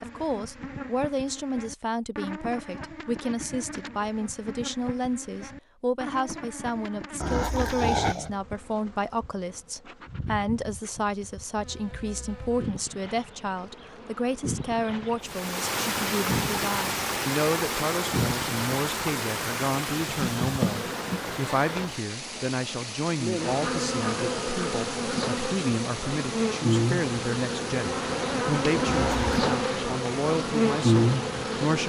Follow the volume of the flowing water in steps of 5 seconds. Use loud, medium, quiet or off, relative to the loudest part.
off, off, off, loud, medium, medium, quiet.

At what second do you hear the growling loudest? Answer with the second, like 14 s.
8 s.